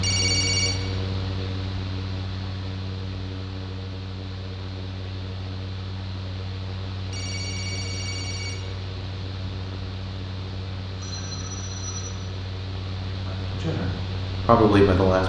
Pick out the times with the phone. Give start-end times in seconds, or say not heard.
0.0-0.8, 7.1-8.6, 10.9-12.2.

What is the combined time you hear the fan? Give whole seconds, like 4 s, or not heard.
15 s.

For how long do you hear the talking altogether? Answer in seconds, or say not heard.
2 s.